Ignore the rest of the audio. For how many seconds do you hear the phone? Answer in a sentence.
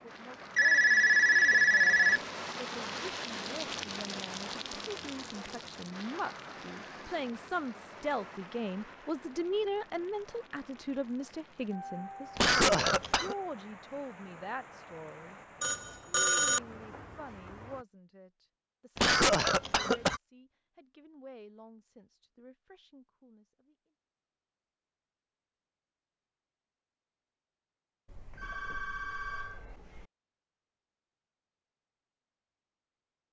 The phone can be heard for 5 seconds in total.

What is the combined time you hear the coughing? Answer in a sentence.
You can hear the coughing for 2 seconds altogether.